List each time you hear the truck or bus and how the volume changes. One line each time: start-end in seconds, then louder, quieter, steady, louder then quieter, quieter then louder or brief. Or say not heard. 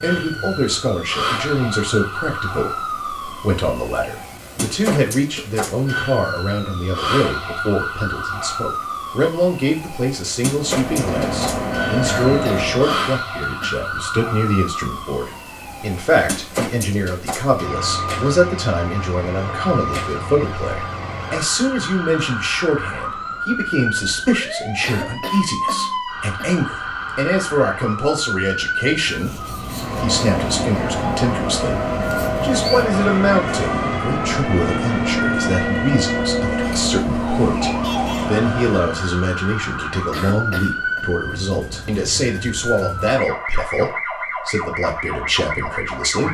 10.5-12.9 brief
29.6-39.1 steady.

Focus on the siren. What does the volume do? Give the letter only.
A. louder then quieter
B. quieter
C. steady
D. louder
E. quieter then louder
C.